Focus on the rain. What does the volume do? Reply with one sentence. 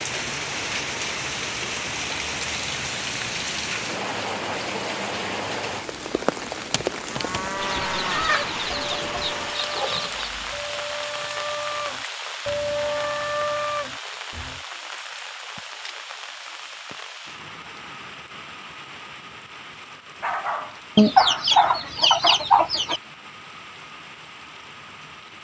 The loudness of the rain goes down.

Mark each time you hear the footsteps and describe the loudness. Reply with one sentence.
The footsteps can't be heard in this clip.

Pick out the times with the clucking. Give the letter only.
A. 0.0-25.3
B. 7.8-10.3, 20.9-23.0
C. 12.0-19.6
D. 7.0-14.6
B.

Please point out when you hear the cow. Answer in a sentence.
The cow can be heard from 7.0 to 14.6 s.